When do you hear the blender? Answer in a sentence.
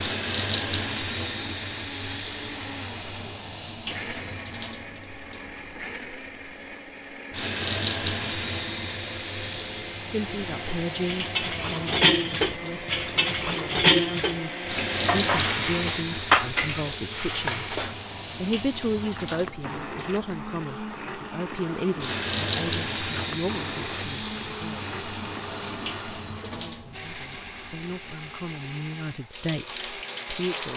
The blender can be heard from 0.1 to 30.7 s.